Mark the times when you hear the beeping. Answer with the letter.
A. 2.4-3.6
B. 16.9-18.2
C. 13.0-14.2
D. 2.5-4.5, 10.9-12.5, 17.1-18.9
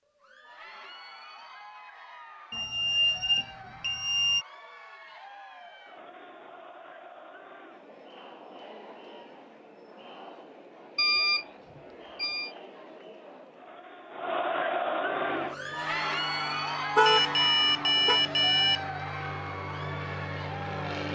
D.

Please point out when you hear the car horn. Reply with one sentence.
You can hear the car horn from 16.9 to 18.2 s.